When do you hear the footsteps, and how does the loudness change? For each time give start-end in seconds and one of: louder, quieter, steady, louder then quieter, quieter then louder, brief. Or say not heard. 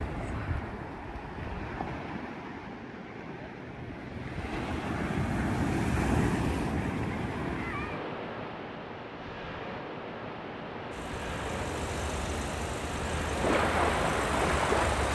not heard.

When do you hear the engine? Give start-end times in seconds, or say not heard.
10.9-15.0.